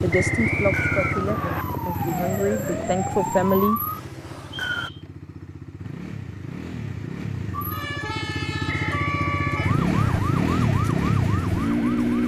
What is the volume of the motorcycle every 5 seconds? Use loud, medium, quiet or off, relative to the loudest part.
medium, medium, loud.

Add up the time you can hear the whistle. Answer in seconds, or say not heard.
4 s.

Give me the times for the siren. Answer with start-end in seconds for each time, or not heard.
0.0-4.9, 7.5-12.2.